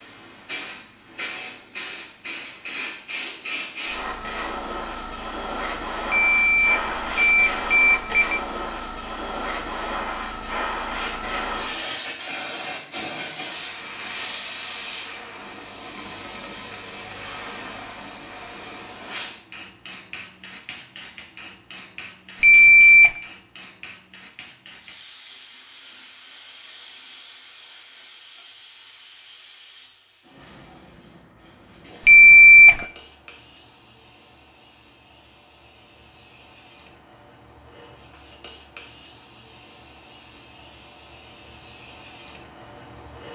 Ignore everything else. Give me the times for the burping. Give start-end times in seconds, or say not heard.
not heard.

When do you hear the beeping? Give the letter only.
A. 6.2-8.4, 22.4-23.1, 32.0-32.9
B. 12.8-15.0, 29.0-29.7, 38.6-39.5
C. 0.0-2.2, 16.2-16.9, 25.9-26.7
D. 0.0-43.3
A.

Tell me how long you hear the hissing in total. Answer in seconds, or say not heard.
43 s.